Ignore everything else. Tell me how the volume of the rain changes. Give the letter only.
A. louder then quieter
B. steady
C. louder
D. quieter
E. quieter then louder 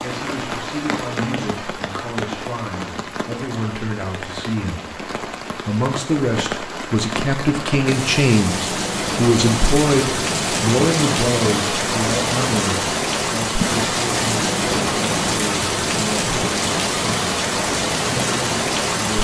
C.